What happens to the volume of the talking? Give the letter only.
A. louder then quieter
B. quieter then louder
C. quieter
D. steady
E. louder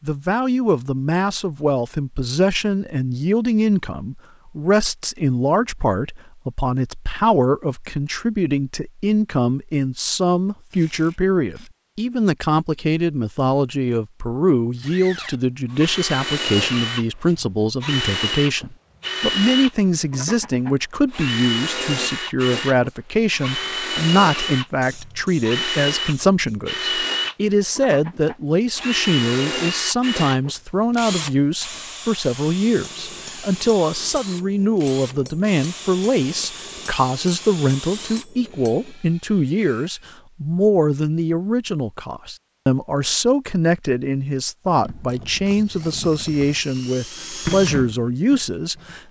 D.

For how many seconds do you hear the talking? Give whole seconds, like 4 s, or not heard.
49 s.